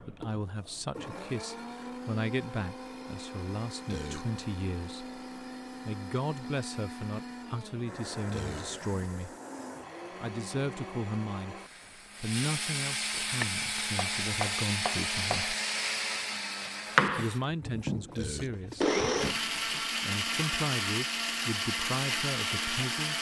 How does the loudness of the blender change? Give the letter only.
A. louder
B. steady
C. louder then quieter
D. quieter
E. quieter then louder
A.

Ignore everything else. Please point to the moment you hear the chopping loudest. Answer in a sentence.
The volume of the chopping peaks at 17 seconds.